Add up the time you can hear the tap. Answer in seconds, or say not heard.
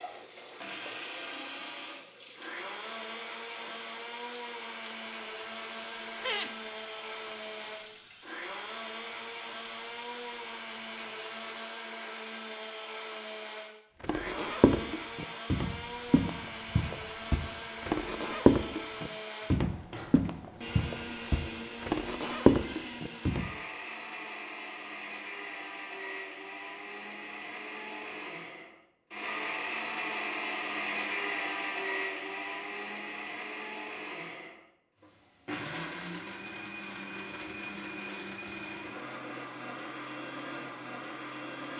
12 s.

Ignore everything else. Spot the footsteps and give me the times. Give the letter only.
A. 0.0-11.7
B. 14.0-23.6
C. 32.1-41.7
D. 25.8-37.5
B.